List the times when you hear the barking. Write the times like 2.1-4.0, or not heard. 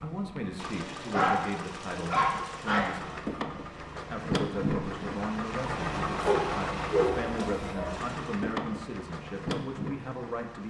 0.8-3.0, 6.2-8.0.